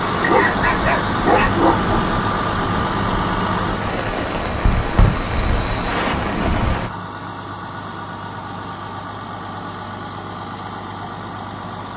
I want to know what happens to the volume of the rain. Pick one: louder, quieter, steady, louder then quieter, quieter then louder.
louder.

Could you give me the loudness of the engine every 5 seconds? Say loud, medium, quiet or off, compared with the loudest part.
loud, medium, medium.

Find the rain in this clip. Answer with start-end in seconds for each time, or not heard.
0.0-6.9.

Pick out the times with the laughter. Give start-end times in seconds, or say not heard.
not heard.